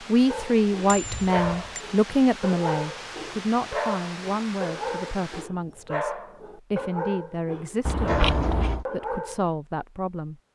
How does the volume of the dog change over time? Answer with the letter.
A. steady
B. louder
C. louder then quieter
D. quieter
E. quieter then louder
A.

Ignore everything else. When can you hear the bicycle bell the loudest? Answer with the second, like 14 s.
8 s.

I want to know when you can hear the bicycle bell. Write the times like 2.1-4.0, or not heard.
0.8-1.8, 7.8-8.8.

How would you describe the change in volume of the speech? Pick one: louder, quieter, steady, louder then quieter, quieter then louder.
quieter.